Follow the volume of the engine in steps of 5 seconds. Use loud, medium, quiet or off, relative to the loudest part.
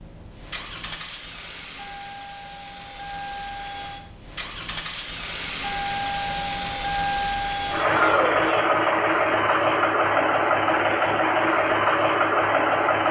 quiet, loud, loud.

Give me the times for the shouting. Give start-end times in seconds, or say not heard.
7.8-8.8.